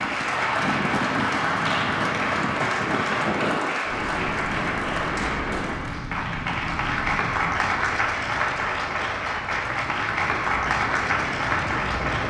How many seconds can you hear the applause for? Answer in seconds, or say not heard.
12 s.